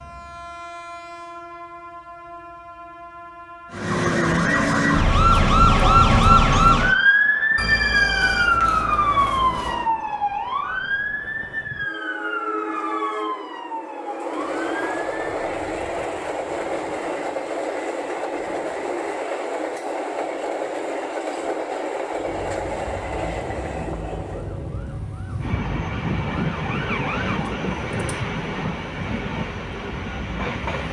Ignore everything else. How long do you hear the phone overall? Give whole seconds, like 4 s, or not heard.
2 s.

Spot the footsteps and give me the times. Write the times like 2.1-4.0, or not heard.
not heard.